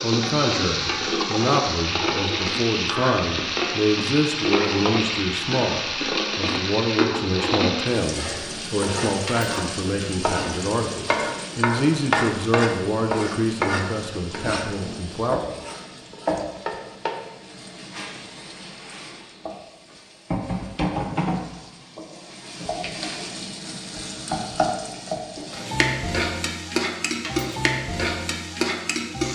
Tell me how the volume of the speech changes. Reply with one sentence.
The loudness of the speech stays about the same.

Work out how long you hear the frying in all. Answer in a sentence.
You can hear the frying for 29 seconds altogether.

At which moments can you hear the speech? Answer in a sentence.
You can hear the speech from 0.0 to 15.4 s.